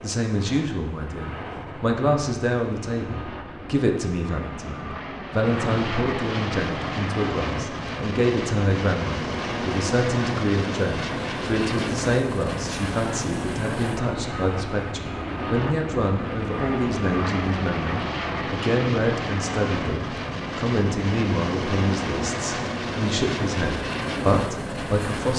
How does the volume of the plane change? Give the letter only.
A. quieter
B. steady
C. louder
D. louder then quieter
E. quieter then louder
C.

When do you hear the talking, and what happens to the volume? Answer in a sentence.
You can hear the talking from 0.0 to 25.3 s, at a steady volume.